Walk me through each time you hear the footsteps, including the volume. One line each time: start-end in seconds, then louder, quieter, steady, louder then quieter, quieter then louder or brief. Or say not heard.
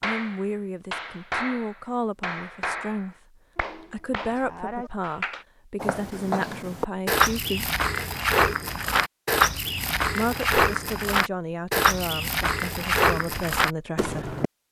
5.8-14.5 steady.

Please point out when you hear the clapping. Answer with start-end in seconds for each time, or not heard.
0.0-5.5.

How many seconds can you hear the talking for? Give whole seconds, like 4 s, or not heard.
12 s.